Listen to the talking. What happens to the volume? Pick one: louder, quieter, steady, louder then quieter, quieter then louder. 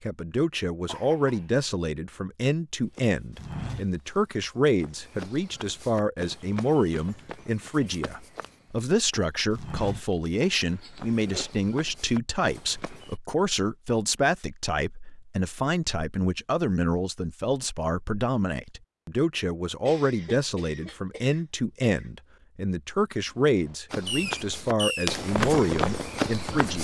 steady.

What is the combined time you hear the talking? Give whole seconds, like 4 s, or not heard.
27 s.